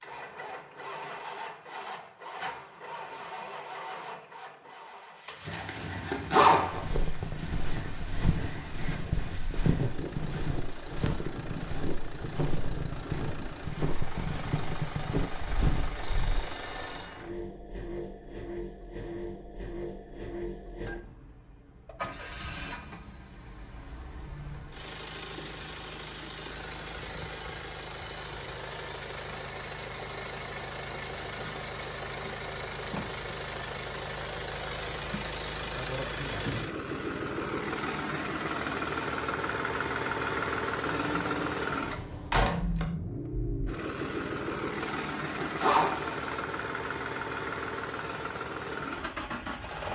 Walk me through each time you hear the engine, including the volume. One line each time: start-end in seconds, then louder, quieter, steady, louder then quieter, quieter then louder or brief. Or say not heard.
0.0-49.9 louder.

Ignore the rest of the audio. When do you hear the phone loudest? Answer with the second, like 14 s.
42 s.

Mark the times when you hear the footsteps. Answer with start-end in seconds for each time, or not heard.
6.7-15.9.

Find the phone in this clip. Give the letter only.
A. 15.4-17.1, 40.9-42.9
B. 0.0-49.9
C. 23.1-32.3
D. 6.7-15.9
A.